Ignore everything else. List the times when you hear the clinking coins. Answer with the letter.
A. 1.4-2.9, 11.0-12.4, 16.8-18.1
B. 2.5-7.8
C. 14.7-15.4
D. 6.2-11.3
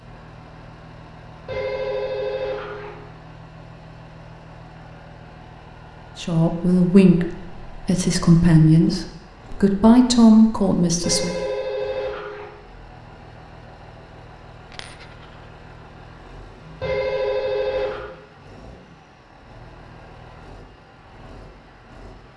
C.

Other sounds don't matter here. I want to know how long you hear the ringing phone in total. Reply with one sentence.
The ringing phone can be heard for 4 seconds in total.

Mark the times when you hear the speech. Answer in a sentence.
The speech can be heard from 6.2 to 11.3 s.